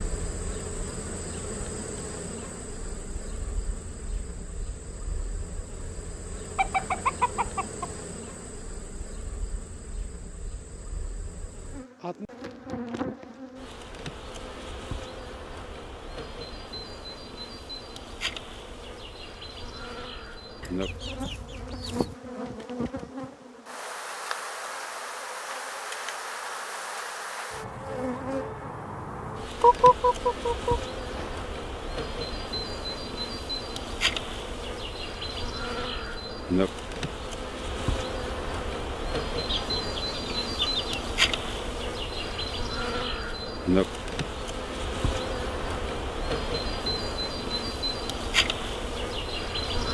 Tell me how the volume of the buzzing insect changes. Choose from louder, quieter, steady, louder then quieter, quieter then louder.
louder.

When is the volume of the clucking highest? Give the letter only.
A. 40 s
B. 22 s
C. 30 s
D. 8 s
C.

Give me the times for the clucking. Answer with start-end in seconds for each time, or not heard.
6.5-8.0, 20.6-22.1, 29.6-31.3, 39.5-41.0.